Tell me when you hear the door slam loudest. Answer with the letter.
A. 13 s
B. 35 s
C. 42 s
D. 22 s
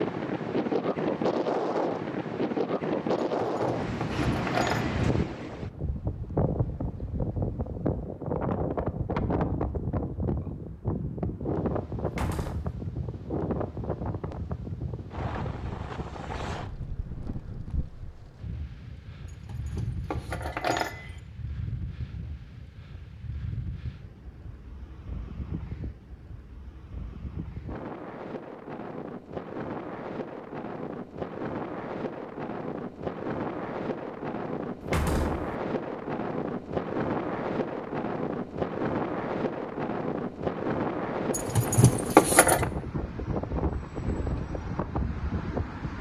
B.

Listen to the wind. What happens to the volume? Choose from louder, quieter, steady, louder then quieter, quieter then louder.
quieter then louder.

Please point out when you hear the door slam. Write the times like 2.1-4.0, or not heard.
12.1-12.8, 34.8-35.5.